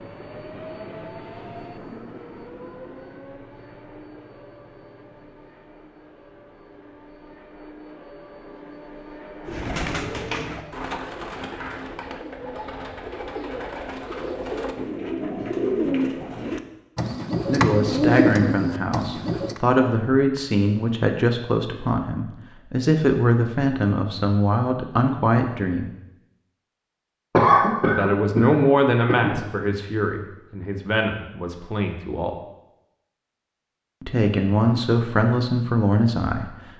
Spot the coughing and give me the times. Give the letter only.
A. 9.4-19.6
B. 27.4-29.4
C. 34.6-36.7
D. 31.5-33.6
B.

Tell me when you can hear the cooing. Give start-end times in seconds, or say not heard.
9.4-19.6.